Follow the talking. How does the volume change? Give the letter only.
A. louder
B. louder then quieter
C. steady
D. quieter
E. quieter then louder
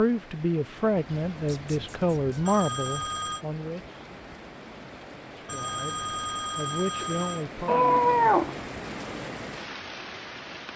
D.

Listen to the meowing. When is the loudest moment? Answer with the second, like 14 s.
8 s.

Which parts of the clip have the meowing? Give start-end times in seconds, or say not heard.
1.3-2.5, 7.7-8.6.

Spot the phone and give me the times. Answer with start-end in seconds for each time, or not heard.
2.5-3.5, 5.5-7.5.